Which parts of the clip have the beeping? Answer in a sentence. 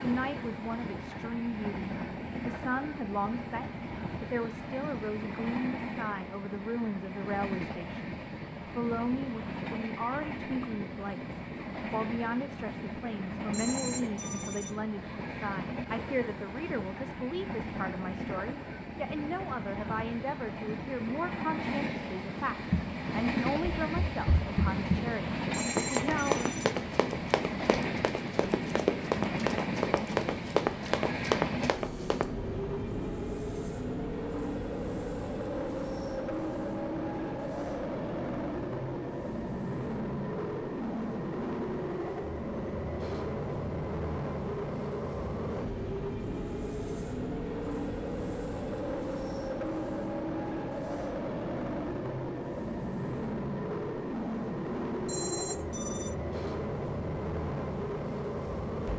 The beeping can be heard from 13.5 to 14.8 s, from 25.5 to 26.8 s and from 55.0 to 56.1 s.